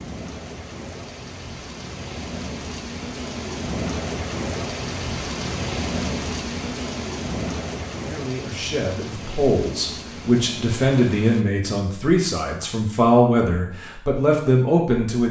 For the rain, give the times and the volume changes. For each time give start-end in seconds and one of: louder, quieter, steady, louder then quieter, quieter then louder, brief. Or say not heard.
0.0-11.4 louder then quieter.